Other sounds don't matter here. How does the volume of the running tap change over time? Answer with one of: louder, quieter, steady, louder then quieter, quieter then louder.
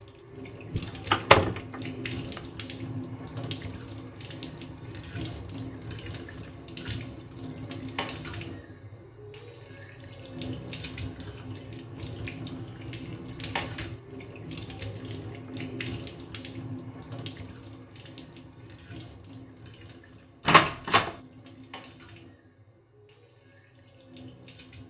quieter.